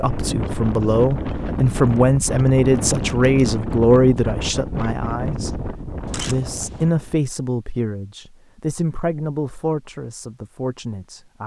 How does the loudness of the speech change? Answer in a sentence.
The volume of the speech goes down.